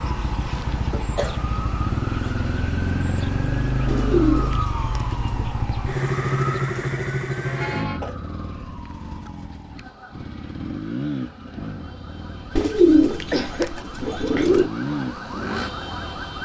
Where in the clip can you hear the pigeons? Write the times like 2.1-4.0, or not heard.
3.9-5.5, 12.6-14.7.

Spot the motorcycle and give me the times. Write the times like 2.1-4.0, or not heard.
0.0-16.4.